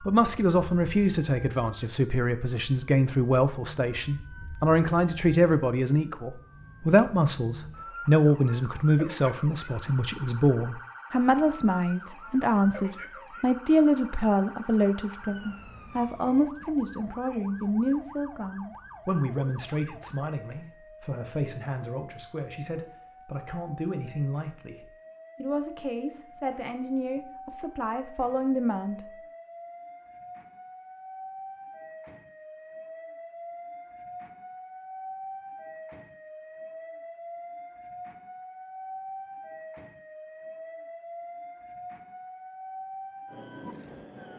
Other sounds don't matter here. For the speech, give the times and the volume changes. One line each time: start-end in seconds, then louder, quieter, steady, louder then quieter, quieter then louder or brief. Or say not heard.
0.1-29.0 quieter.